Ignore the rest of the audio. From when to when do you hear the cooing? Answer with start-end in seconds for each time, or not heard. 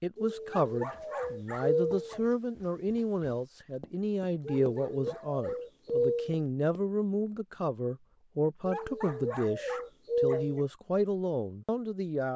0.1-2.2, 4.5-6.4, 8.7-10.7.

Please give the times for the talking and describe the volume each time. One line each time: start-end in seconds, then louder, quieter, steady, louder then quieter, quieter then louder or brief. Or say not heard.
0.0-12.3 steady.